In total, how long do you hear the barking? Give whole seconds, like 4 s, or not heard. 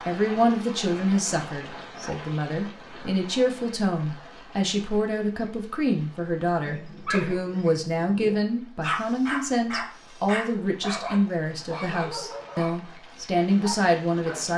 8 s.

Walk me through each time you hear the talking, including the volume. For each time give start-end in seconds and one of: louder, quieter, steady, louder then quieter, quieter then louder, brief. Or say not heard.
0.1-14.5 steady.